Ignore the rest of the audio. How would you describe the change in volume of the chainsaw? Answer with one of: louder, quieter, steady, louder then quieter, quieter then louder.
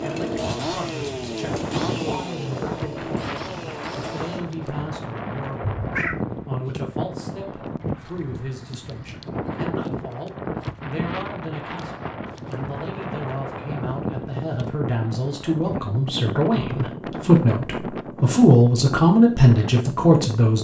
quieter.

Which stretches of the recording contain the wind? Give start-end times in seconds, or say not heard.
0.0-20.5.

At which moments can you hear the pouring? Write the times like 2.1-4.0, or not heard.
not heard.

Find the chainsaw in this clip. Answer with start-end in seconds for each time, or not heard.
0.0-4.5.